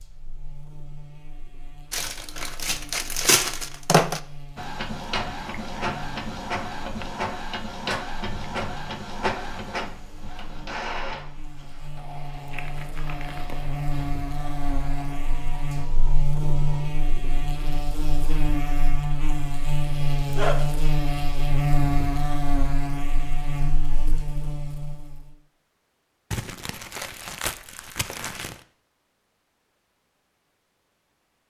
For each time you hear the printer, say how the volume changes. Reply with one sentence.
The printer can be heard from 4.5 to 16.8 s, getting quieter.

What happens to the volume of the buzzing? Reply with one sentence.
The loudness of the buzzing goes up.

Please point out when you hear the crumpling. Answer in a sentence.
The crumpling can be heard from 1.9 to 4.2 s, from 12.5 to 13.8 s and from 26.3 to 28.6 s.